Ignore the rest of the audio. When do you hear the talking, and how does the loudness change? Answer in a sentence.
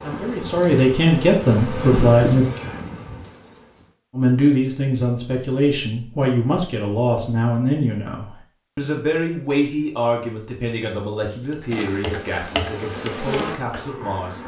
You can hear the talking briefly from 0.0 to 2.5 s; and from 4.1 to 14.4 s, getting quieter.